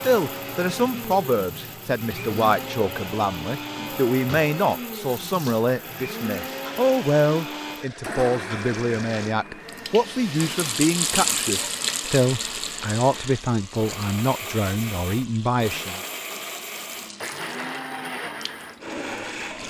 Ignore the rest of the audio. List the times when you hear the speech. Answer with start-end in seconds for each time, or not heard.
0.0-16.0.